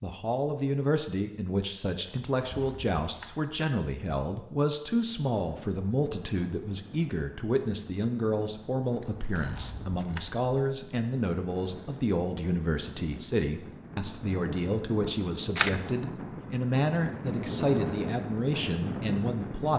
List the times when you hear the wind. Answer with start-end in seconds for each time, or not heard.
4.9-19.7.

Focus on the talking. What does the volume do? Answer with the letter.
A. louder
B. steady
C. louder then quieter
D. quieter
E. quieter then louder
B.